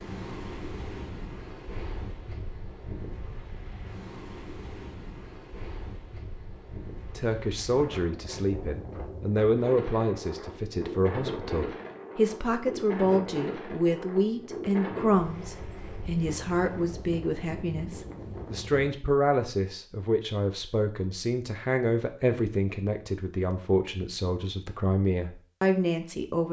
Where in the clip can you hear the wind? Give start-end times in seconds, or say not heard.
0.0-18.9.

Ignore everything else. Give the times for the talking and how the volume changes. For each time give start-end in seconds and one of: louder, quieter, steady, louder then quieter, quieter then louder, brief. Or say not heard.
7.2-26.4 steady.